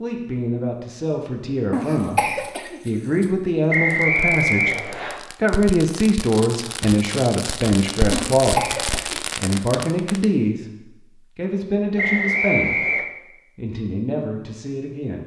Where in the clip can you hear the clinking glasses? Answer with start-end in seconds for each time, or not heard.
not heard.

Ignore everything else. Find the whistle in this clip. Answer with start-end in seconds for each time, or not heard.
3.7-5.2, 11.9-13.1.